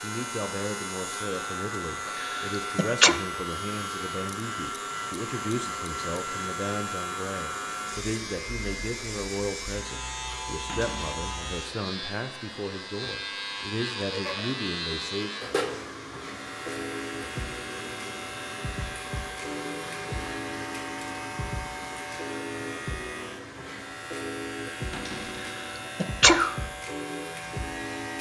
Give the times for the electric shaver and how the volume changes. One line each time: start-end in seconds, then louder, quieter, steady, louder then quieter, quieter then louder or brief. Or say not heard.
0.0-28.1 steady.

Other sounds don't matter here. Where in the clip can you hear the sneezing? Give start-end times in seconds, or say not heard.
2.0-3.1, 25.4-26.6.